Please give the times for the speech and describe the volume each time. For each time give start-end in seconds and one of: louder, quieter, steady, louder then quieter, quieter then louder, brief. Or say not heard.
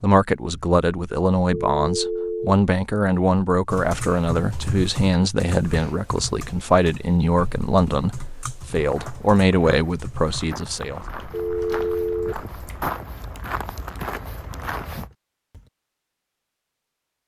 0.0-11.0 steady.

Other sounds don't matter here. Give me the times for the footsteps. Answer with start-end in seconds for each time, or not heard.
8.7-15.1.